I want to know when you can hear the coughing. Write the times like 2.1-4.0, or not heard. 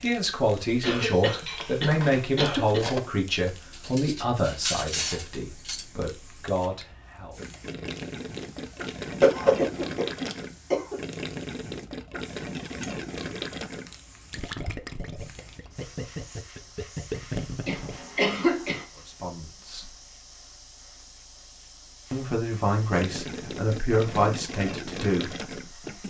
0.8-2.8, 9.2-10.9, 17.6-18.9.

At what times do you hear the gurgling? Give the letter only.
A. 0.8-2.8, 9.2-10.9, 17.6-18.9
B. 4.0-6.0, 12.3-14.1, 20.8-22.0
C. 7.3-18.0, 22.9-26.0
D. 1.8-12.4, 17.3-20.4
C.